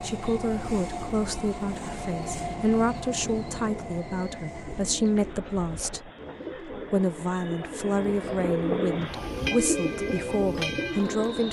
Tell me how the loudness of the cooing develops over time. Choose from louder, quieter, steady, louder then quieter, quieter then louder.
louder.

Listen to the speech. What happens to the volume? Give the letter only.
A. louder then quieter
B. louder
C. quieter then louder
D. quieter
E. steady
E.